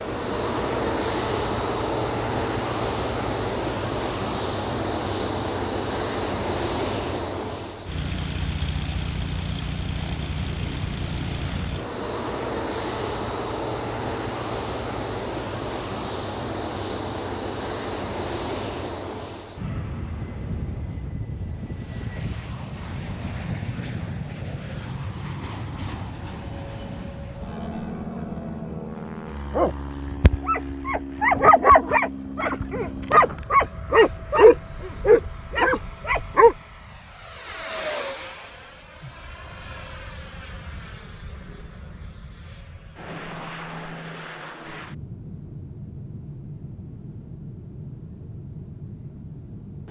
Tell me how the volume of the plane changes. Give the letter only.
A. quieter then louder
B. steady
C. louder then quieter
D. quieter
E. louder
D.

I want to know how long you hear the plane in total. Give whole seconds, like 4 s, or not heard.
50 s.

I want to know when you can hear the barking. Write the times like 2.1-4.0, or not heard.
29.6-36.5.